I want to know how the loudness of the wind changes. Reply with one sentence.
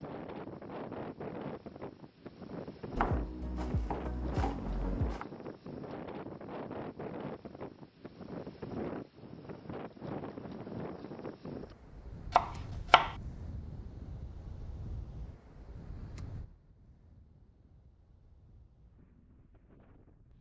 The loudness of the wind goes down.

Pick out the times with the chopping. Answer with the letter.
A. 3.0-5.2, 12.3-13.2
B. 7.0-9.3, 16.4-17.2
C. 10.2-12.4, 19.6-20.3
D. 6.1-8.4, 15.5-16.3
A.